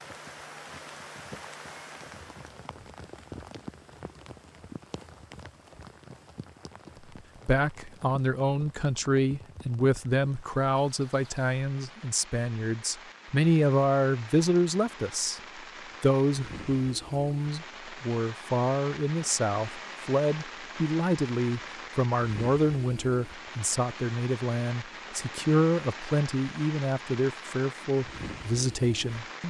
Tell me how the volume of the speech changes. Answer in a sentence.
The volume of the speech stays about the same.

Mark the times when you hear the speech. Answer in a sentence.
You can hear the speech from 7.5 to 15.4 s and from 16.0 to 29.4 s.